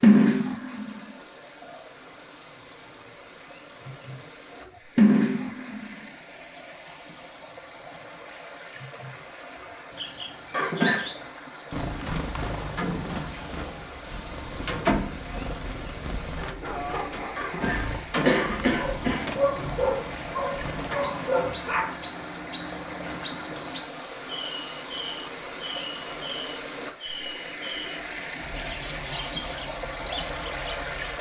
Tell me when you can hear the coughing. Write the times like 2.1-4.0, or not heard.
10.5-11.1, 17.4-19.4.